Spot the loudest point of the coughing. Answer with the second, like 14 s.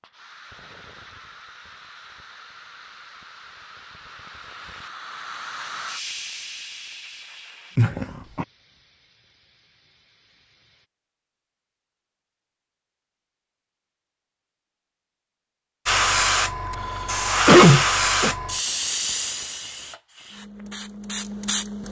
18 s.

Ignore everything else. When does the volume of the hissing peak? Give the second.
18 s.